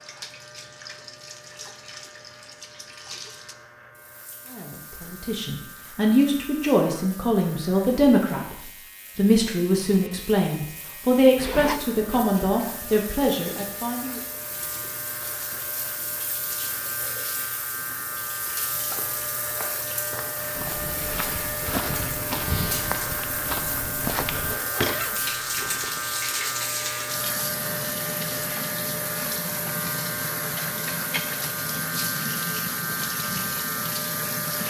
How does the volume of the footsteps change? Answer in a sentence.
The loudness of the footsteps goes up.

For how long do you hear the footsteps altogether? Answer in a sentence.
You can hear the footsteps for 6 seconds altogether.